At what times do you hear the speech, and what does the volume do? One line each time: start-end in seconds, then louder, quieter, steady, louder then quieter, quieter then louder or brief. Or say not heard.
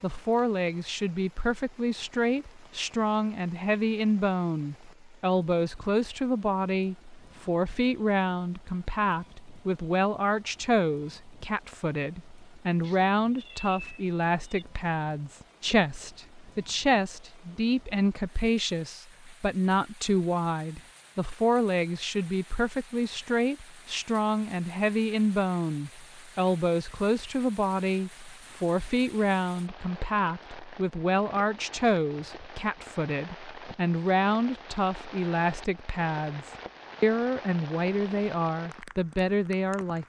0.0-40.0 steady.